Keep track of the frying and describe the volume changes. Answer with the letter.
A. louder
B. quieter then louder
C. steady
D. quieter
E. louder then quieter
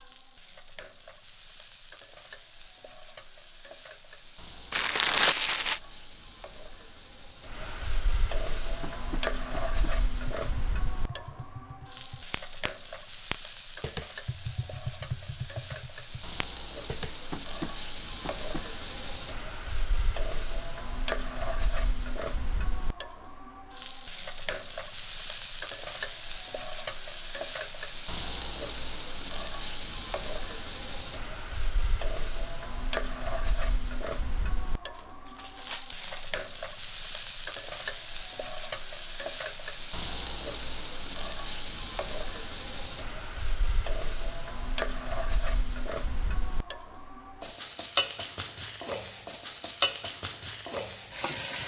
A.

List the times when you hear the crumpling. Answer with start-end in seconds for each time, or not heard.
4.7-5.8, 35.0-36.3.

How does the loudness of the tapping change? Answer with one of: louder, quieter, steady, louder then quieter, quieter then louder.
louder.